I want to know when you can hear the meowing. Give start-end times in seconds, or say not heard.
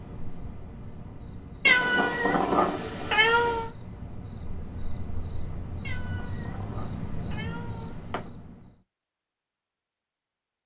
1.6-3.7, 5.8-8.3.